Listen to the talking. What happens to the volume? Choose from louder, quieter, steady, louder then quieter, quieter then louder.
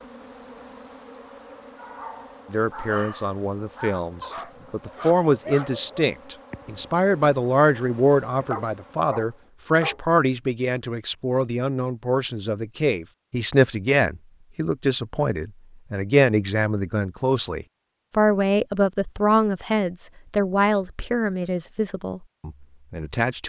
steady.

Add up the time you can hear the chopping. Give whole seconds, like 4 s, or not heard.
not heard.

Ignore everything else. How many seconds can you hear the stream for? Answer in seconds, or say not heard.
not heard.